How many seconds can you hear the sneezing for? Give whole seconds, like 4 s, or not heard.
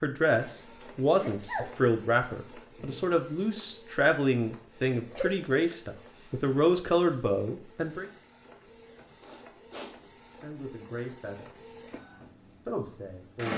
2 s.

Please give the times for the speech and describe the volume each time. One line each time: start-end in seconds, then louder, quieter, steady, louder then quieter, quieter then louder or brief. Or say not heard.
0.0-8.1 steady
10.4-11.5 brief
12.7-13.5 brief.